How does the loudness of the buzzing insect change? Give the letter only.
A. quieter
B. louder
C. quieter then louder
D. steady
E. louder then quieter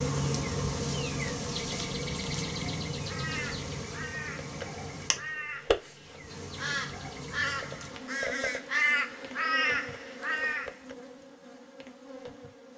A.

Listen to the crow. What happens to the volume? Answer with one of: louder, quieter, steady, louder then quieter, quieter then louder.
louder.